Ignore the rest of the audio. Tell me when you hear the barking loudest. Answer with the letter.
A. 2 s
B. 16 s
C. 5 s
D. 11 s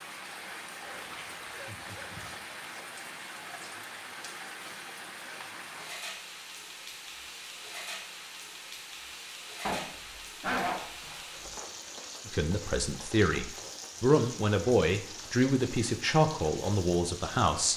D.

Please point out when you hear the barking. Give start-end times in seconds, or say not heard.
0.8-2.4, 9.7-11.6.